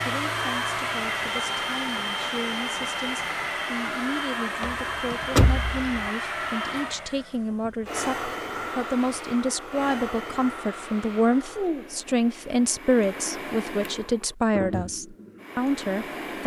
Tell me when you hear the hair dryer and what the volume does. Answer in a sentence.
You can hear the hair dryer from 0.0 to 16.4 s, getting quieter.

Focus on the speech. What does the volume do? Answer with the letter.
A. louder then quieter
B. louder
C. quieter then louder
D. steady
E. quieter
B.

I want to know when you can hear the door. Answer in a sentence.
The door can be heard from 4.6 to 6.0 s.